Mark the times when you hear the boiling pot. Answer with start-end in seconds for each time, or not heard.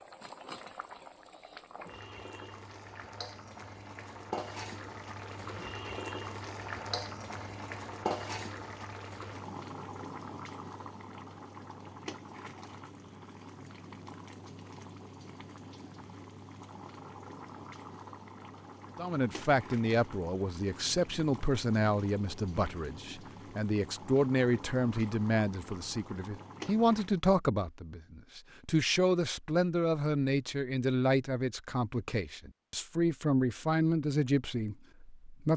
0.0-27.2.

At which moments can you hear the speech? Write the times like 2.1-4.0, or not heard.
18.9-35.5.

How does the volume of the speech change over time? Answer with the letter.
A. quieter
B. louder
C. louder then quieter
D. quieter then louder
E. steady
E.